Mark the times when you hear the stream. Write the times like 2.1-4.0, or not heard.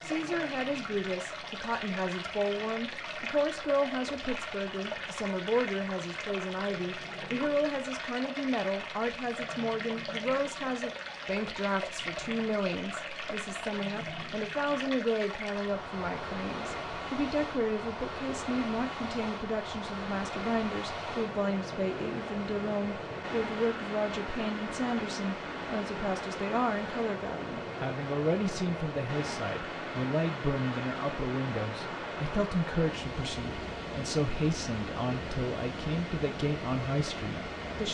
0.0-37.8.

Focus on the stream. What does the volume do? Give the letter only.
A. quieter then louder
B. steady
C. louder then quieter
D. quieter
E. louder
B.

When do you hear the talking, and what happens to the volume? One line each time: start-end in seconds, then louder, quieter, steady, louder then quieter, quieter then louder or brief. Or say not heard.
0.0-37.8 steady.